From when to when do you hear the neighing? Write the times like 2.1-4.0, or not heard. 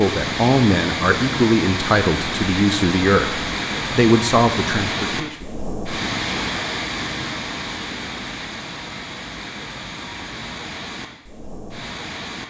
not heard.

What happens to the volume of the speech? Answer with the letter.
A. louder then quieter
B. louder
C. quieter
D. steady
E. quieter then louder
D.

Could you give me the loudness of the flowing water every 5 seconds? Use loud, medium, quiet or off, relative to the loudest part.
loud, loud, medium.